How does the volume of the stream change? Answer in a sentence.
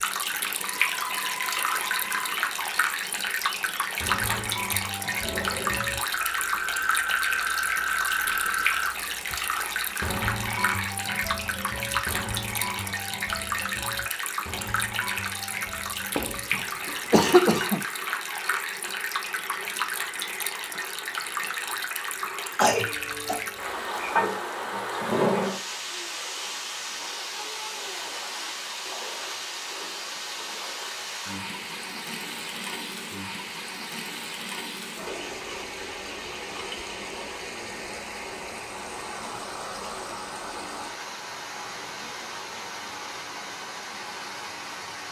The loudness of the stream goes down.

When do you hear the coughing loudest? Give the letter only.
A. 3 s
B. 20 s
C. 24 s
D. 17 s
D.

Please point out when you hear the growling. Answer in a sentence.
The growling can be heard from 4.2 to 5.9 s and from 24.1 to 25.6 s.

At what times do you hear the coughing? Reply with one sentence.
The coughing can be heard from 16.1 to 17.8 s and from 22.6 to 23.4 s.